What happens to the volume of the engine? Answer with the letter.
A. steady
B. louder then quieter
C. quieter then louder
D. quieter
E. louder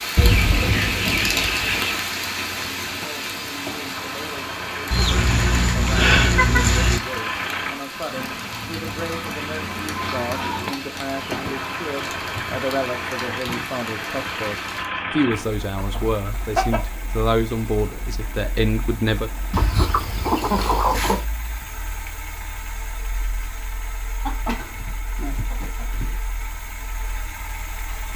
D.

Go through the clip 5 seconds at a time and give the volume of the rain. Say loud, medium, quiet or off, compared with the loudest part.
loud, medium, medium, off, off, off.